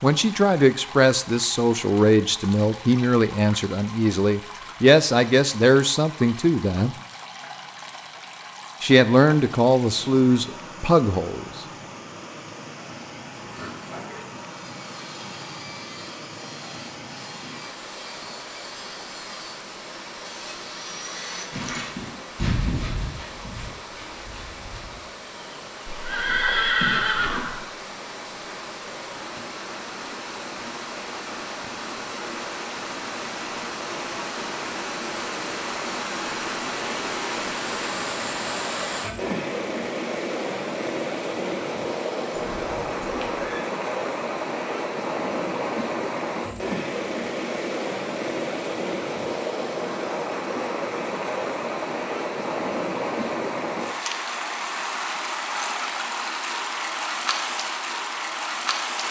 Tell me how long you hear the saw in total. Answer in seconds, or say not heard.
12 s.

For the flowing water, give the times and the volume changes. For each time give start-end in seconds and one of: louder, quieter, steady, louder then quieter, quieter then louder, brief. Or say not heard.
0.0-59.0 louder.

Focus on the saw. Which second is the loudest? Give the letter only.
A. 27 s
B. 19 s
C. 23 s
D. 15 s
C.